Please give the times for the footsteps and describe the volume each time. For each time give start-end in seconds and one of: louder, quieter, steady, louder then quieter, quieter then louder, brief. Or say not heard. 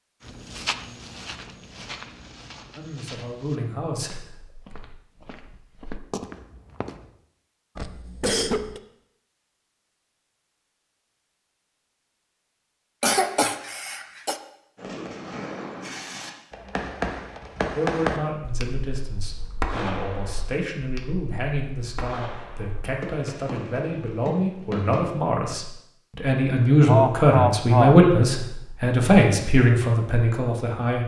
0.2-7.1 quieter then louder.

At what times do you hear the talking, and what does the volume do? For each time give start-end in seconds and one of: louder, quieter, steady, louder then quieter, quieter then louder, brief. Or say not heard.
2.8-4.5 brief
17.8-31.0 louder.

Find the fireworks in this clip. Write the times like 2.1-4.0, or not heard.
14.8-25.1.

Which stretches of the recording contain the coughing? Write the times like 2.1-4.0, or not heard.
7.8-8.8, 13.0-14.3, 26.9-27.9.